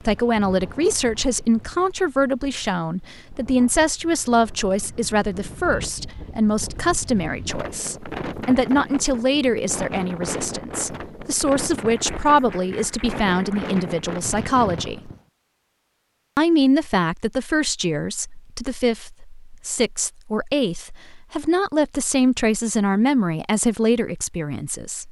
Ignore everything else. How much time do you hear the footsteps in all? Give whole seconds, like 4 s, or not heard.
not heard.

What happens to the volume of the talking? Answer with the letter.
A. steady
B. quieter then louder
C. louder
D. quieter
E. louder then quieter
A.